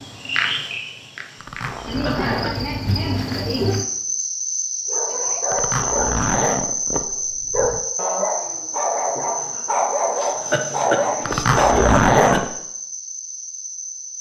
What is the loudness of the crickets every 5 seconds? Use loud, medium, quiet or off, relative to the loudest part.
loud, loud, medium.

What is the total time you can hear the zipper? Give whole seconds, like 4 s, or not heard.
5 s.